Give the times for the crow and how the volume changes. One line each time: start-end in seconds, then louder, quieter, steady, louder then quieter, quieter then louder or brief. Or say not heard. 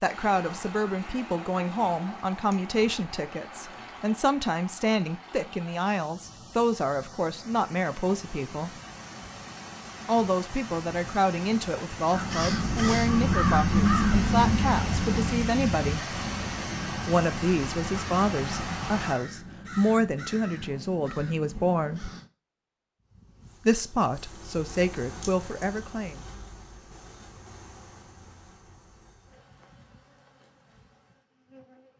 12.1-22.3 quieter.